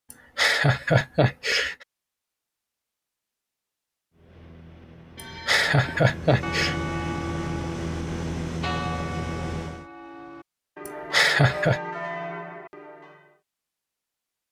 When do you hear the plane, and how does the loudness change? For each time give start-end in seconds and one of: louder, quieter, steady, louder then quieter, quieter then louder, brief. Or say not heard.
4.1-9.8 louder.